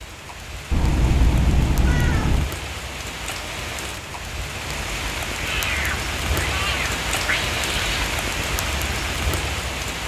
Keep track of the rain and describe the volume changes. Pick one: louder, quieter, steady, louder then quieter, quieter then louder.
louder.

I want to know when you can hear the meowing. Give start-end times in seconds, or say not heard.
0.7-2.5, 5.3-8.1.